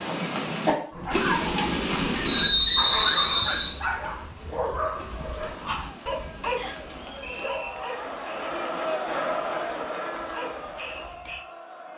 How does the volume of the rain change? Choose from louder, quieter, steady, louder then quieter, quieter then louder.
quieter.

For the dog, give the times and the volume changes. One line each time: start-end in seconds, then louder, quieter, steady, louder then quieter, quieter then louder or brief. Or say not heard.
0.9-11.4 quieter.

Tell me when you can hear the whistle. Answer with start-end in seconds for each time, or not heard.
2.2-3.8, 6.5-7.8.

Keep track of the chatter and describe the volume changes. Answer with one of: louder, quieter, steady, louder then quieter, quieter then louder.
louder then quieter.